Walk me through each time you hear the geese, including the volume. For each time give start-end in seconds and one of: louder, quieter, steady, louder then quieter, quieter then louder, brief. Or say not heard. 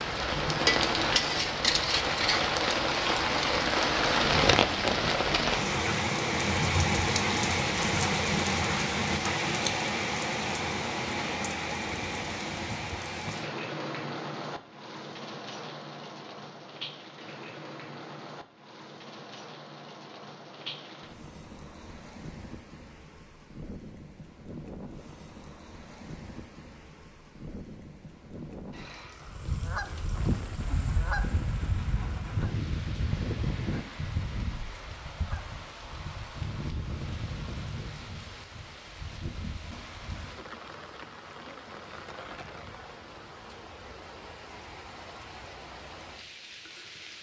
29.2-40.4 quieter.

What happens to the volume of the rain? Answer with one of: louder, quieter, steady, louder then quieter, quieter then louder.
quieter.